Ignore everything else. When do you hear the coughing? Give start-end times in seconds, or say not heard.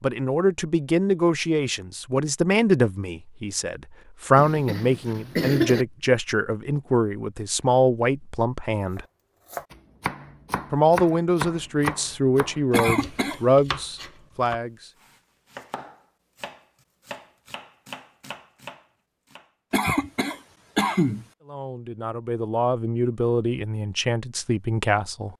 4.3-5.8, 12.7-13.4, 19.7-21.2.